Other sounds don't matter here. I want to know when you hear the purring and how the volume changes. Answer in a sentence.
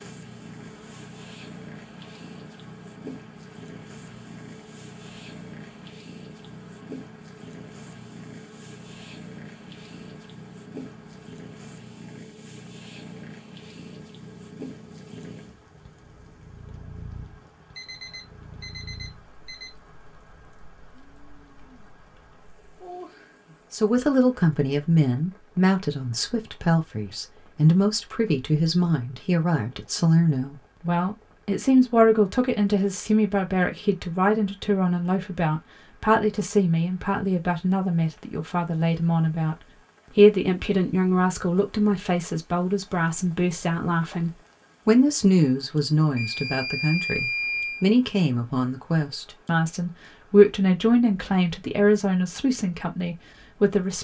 You can hear the purring from 0.0 to 23.6 s, getting quieter.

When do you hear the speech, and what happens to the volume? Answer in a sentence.
You can hear the speech from 23.7 to 53.9 s, at a steady volume.